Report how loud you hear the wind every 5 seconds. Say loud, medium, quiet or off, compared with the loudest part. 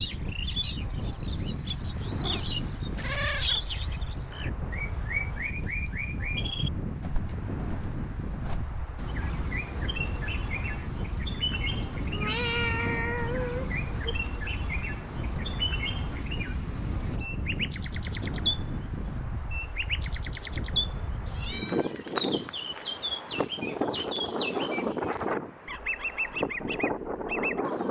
medium, medium, medium, medium, loud, loud.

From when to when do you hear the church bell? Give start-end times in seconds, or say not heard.
not heard.